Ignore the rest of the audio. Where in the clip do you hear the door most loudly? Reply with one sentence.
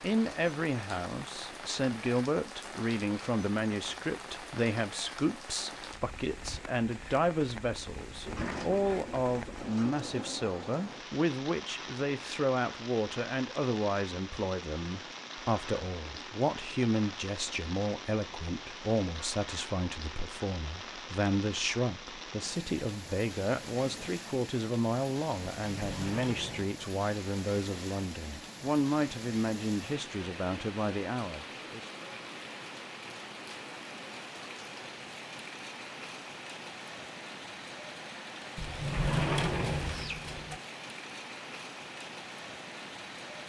The volume of the door peaks at 39 seconds.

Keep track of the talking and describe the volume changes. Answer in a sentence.
The volume of the talking stays about the same.